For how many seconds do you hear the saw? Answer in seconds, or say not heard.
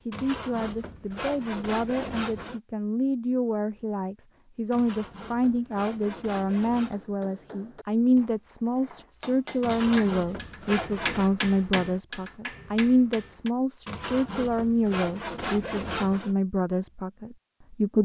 9 s.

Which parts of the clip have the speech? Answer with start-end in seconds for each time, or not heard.
0.1-17.9.